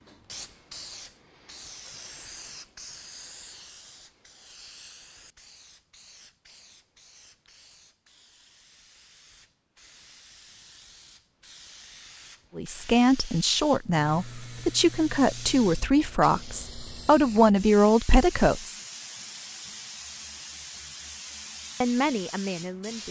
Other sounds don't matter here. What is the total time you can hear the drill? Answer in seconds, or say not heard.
not heard.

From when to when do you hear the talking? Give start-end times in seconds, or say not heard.
12.6-18.8, 21.8-23.0.